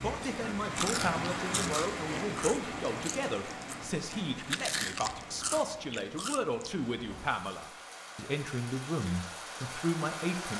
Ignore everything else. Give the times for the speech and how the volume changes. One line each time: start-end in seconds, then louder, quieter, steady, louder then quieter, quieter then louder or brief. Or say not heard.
0.0-10.5 steady.